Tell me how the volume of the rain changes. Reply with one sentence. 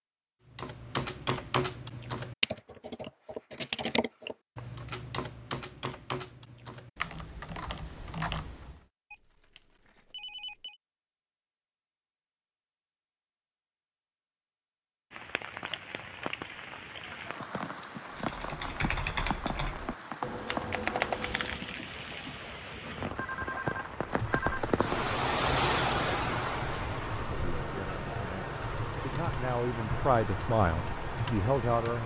The volume of the rain goes up, then down.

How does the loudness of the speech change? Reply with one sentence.
The loudness of the speech goes up.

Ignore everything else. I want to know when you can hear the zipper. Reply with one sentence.
The zipper can't be heard in this clip.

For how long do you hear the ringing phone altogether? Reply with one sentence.
The ringing phone can be heard for 3 seconds in total.